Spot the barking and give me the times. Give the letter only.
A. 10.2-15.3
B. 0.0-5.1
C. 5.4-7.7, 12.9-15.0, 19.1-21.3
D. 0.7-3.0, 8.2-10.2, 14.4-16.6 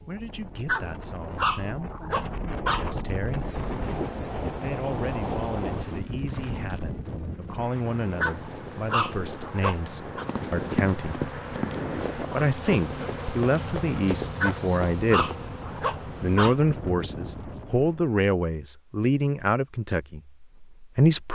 D.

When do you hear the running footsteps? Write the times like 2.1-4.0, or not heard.
10.2-15.3.